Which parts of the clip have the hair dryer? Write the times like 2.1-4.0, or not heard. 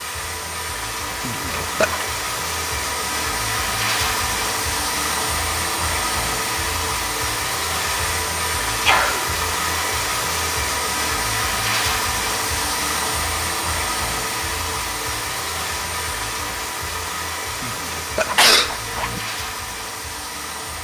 0.0-20.7.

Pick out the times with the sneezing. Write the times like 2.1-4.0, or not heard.
1.2-2.0, 8.8-9.2, 17.6-19.2.